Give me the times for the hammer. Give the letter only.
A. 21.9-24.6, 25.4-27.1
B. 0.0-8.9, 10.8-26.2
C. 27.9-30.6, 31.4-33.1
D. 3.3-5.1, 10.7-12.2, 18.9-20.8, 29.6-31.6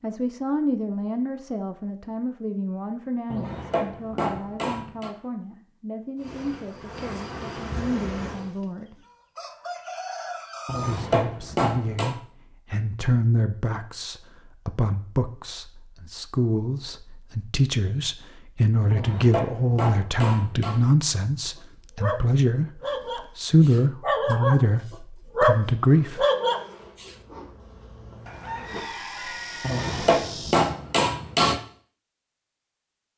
D.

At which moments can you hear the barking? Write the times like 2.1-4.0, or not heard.
21.9-24.6, 25.4-27.1.